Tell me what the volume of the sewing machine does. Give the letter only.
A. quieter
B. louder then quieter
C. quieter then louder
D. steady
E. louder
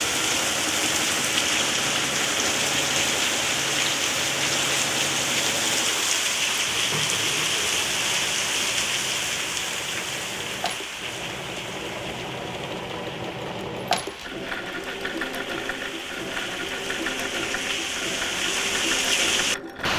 C.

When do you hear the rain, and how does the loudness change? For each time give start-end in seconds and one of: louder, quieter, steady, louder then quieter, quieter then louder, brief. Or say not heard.
0.0-19.9 quieter then louder.